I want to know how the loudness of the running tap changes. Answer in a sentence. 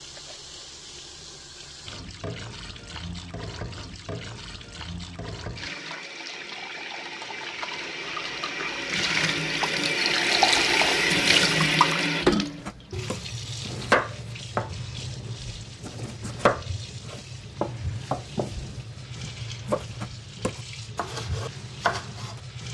The loudness of the running tap goes up, then down.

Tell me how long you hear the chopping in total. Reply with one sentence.
The chopping can be heard for 10 seconds in total.